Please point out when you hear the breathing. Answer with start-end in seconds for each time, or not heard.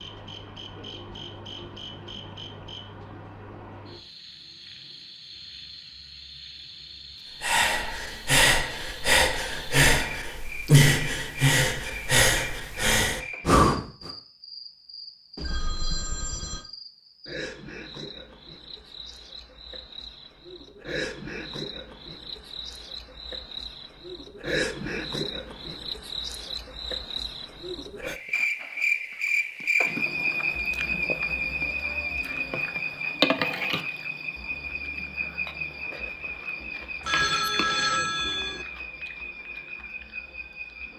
7.4-14.1.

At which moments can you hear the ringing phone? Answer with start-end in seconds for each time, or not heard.
15.3-16.6, 37.0-38.6.